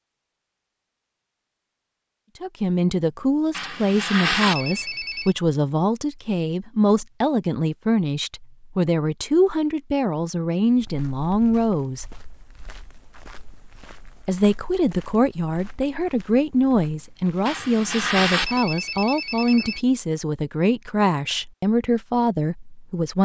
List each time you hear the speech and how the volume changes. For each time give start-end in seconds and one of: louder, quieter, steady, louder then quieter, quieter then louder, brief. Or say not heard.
2.4-12.1 steady
14.2-23.2 steady.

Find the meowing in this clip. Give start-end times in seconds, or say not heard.
not heard.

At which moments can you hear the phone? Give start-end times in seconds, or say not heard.
3.5-5.3, 17.4-19.8.